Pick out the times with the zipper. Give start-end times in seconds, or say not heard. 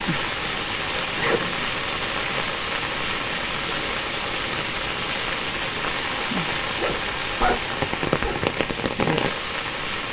1.1-1.6, 6.8-8.4.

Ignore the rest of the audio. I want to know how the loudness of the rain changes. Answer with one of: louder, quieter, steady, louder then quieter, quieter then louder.
steady.